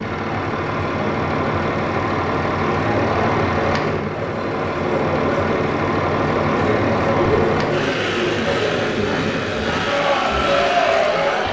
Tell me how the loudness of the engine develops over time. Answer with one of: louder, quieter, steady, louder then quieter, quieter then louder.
steady.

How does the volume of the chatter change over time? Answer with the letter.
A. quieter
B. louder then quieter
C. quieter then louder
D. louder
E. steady
D.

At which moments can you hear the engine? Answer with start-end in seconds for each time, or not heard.
0.0-11.4.